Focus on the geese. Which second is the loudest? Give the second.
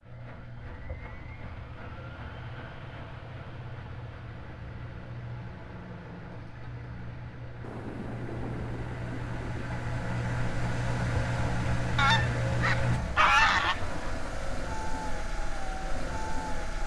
13 s.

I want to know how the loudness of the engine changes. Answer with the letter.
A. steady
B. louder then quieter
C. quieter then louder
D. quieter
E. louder
B.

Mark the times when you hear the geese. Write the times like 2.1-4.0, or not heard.
11.9-13.8.